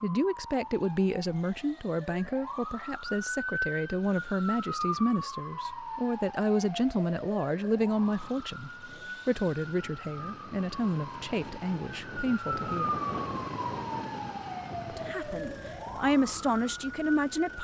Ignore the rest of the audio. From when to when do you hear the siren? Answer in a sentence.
You can hear the siren from 0.0 to 17.6 s.